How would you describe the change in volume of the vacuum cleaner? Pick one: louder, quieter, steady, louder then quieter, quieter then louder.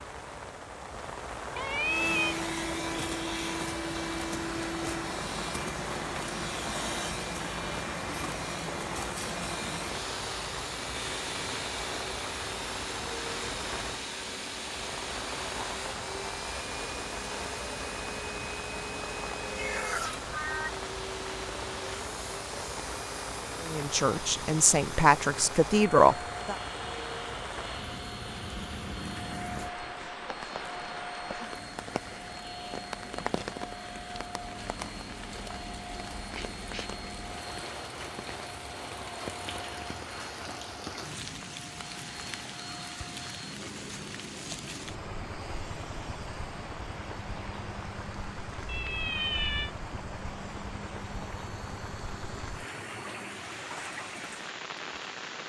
quieter.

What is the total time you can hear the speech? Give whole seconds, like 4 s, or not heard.
3 s.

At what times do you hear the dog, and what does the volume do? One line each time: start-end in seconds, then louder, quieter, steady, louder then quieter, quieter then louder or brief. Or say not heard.
not heard.